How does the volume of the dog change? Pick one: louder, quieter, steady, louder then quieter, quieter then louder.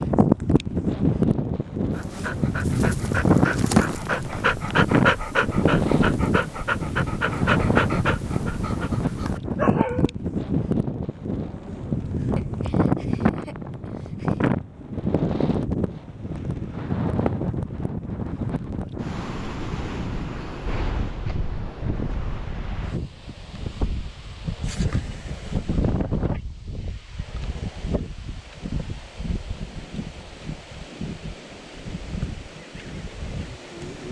louder then quieter.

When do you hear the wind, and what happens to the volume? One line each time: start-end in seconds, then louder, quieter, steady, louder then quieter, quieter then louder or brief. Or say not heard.
0.0-34.0 quieter.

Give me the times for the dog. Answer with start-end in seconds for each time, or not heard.
1.9-10.1.